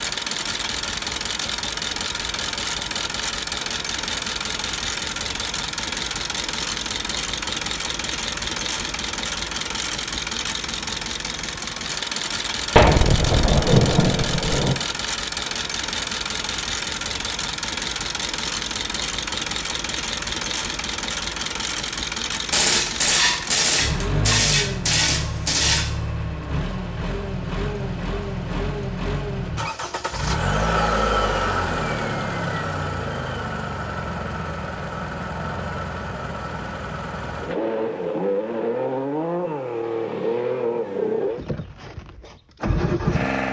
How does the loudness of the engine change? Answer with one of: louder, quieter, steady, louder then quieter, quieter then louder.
steady.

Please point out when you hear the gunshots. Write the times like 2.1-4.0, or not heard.
12.8-14.8, 22.5-25.9.